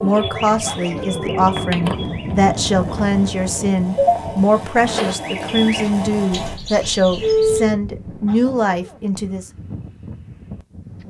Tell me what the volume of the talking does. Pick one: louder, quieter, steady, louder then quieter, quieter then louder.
steady.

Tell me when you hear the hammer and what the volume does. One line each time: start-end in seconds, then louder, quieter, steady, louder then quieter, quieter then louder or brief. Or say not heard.
not heard.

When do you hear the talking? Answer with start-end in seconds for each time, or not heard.
0.0-9.5.